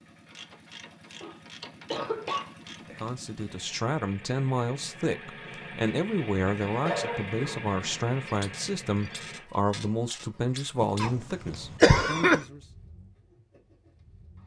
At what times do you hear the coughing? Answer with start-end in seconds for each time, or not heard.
1.2-3.1, 6.8-8.1, 11.0-12.4.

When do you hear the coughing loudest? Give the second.
12 s.